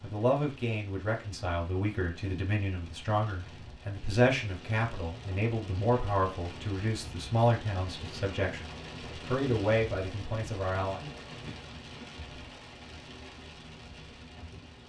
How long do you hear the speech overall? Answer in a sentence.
You can hear the speech for 11 seconds altogether.